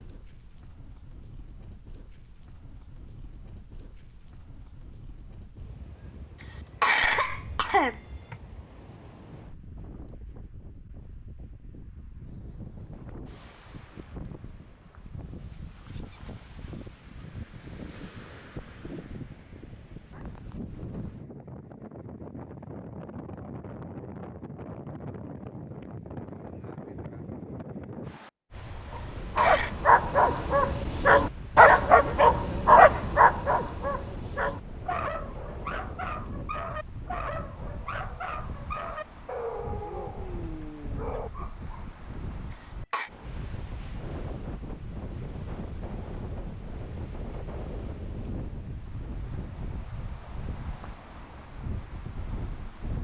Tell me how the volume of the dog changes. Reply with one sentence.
The loudness of the dog goes down.